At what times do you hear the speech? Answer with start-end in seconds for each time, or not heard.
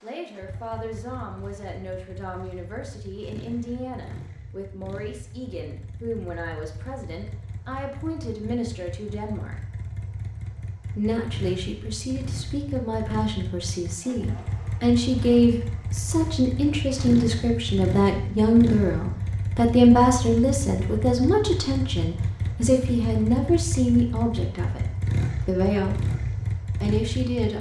0.0-9.6, 10.9-26.0, 26.8-27.5.